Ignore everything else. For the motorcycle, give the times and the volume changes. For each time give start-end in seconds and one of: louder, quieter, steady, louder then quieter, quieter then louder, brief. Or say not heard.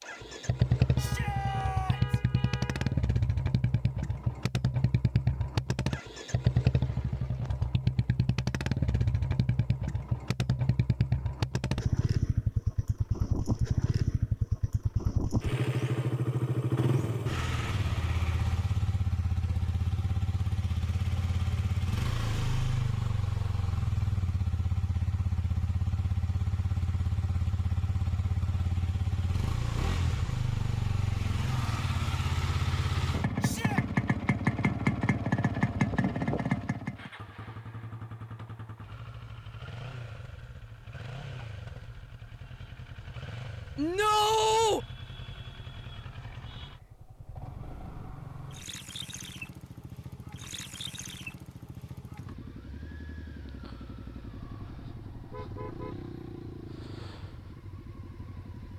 0.0-58.7 quieter.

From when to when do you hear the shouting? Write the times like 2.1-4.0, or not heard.
0.9-2.2, 33.4-33.9, 43.8-44.8.